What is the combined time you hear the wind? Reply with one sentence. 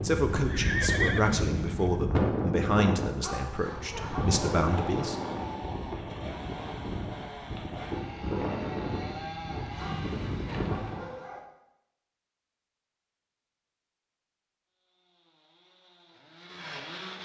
You can hear the wind for 11 seconds altogether.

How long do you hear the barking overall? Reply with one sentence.
The barking can be heard for 3 seconds in total.